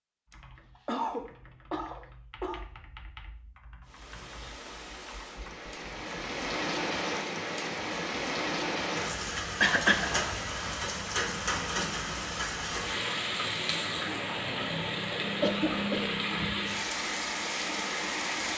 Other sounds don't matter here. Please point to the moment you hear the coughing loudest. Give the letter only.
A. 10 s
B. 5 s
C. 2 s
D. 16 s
A.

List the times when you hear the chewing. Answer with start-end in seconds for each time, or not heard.
not heard.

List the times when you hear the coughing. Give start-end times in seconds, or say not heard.
0.3-2.6, 9.6-10.2, 15.4-16.1.